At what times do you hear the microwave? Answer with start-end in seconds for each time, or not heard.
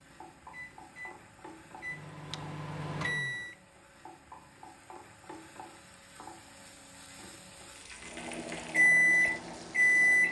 0.0-3.5, 8.2-10.2.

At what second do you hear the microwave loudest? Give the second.
9 s.